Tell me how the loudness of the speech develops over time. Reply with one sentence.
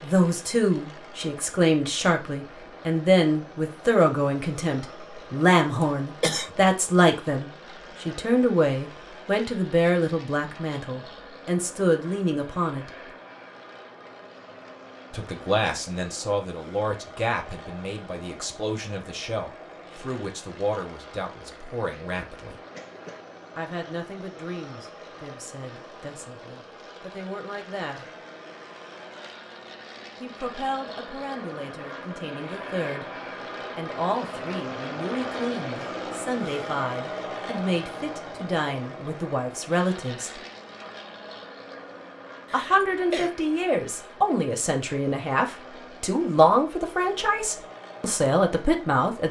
The loudness of the speech goes down, then up.